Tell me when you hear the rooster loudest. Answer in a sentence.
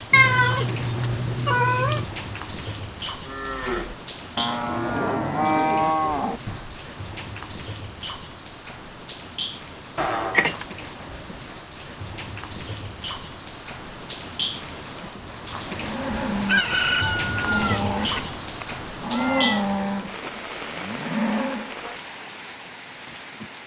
The loudest moment of the rooster is at 17 seconds.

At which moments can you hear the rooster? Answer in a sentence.
You can hear the rooster from 16.4 to 18.2 s.